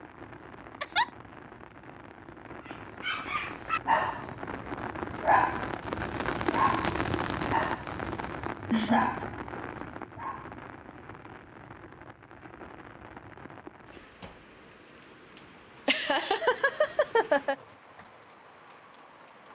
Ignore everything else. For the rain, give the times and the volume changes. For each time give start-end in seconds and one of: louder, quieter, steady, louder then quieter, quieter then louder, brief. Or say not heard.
0.0-19.5 louder then quieter.